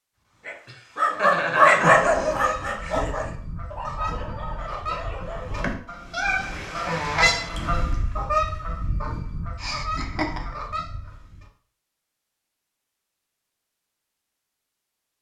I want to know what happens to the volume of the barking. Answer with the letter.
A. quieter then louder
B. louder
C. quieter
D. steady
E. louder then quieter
C.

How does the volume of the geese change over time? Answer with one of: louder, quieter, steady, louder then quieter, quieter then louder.
louder then quieter.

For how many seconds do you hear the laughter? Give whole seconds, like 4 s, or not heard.
2 s.